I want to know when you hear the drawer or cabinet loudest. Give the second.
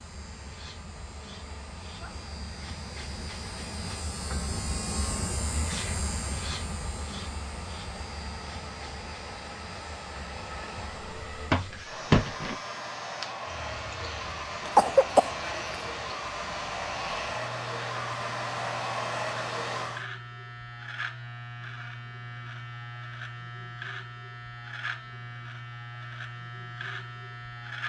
12 s.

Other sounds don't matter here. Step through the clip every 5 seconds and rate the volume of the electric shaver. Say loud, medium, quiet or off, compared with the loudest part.
loud, loud, medium, loud, loud, loud.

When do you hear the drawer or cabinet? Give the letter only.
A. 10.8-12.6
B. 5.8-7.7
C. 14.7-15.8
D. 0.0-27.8
A.